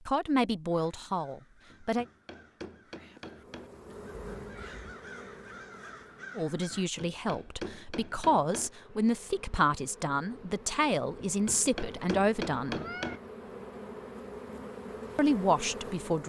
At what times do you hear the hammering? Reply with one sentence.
The hammering can be heard from 1.7 to 3.7 s, from 6.7 to 8.7 s and from 11.2 to 13.2 s.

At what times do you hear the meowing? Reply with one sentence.
You can hear the meowing from 4.2 to 5.0 s and from 12.7 to 13.2 s.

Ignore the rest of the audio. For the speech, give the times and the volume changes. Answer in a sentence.
You can hear the speech briefly from 0.1 to 2.0 s; from 6.3 to 12.8 s, getting louder; and briefly from 15.2 to 16.2 s.